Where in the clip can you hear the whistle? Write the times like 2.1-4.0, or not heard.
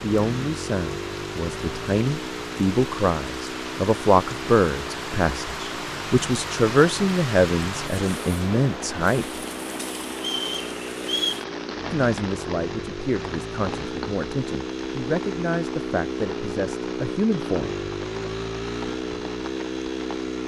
10.2-11.4.